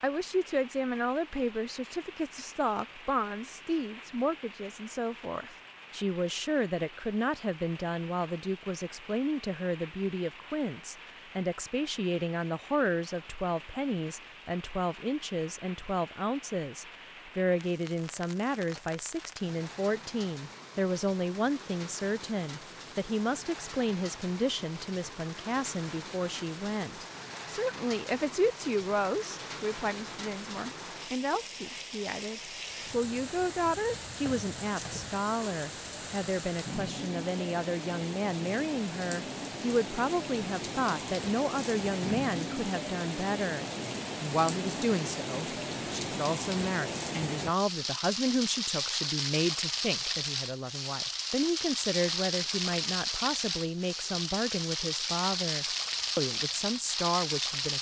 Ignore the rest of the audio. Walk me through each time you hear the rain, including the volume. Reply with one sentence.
The rain can be heard from 0.0 to 57.7 s, getting louder.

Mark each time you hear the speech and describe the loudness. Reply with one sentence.
You can hear the speech from 0.0 to 57.7 s, at a steady volume.